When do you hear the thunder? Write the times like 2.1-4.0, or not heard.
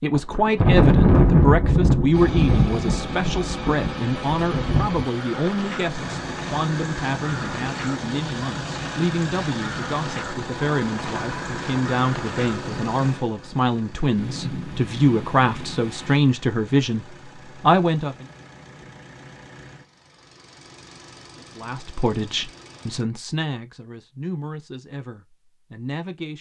0.1-5.0, 14.2-16.2.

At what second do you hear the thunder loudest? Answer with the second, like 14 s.
1 s.